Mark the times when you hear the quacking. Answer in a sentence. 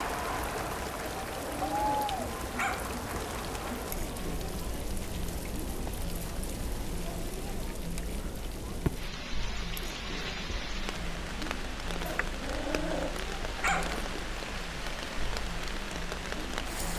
The quacking can't be heard in this clip.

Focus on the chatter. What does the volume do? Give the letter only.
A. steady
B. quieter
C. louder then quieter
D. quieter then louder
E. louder
B.